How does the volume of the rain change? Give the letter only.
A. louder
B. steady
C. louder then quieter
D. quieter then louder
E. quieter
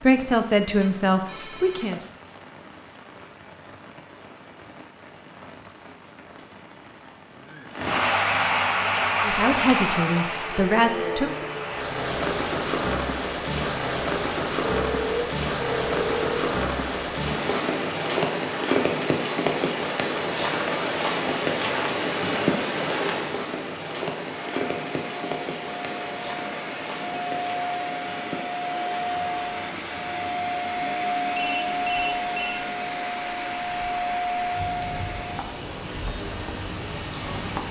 C.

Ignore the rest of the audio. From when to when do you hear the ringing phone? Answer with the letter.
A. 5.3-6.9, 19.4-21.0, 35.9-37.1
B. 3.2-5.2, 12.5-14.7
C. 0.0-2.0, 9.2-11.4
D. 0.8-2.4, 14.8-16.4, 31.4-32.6
D.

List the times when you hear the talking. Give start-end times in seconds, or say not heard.
0.0-2.0, 9.2-11.4.